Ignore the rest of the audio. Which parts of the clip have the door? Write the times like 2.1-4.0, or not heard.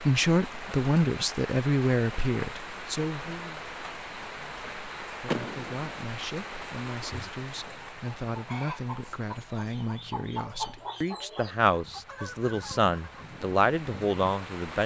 5.2-6.0.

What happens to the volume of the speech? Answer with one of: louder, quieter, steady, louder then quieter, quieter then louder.
quieter then louder.